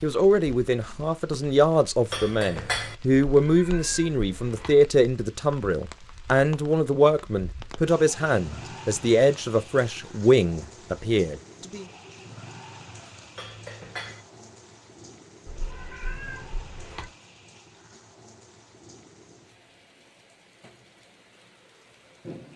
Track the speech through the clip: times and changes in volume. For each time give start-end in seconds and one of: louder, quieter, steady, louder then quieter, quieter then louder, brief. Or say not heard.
0.0-11.8 steady.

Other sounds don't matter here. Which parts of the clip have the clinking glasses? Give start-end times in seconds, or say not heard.
2.1-3.0, 13.3-14.2.